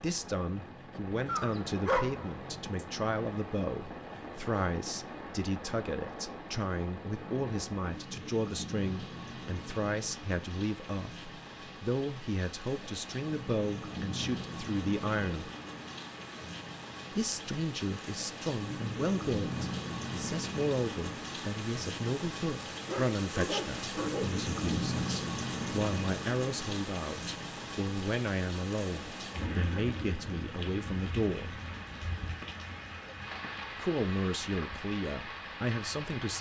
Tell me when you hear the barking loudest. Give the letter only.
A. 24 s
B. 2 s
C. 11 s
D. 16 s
B.